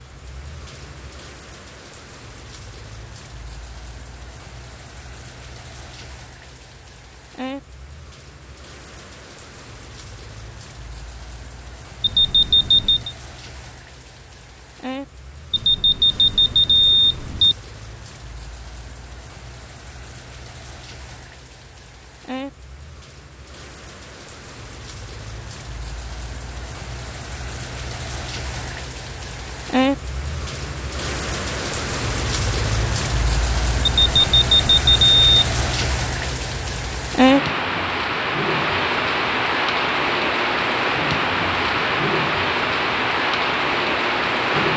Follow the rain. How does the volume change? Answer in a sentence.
The loudness of the rain goes up.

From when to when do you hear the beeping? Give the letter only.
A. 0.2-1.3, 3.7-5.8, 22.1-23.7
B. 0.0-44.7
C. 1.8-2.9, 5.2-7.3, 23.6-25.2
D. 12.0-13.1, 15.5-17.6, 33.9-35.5
D.